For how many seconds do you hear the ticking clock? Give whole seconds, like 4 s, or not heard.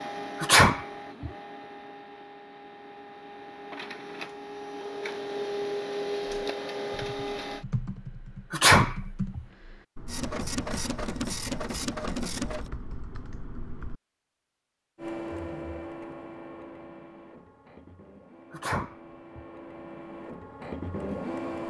not heard.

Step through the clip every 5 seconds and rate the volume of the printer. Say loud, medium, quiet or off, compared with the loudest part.
medium, loud, loud, medium, loud.